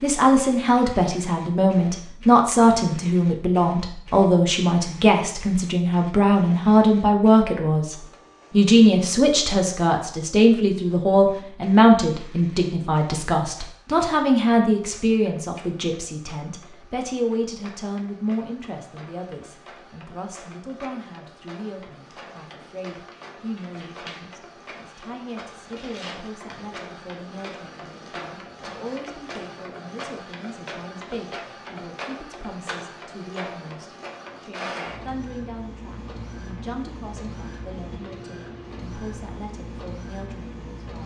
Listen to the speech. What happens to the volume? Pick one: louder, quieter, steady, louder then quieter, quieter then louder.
quieter.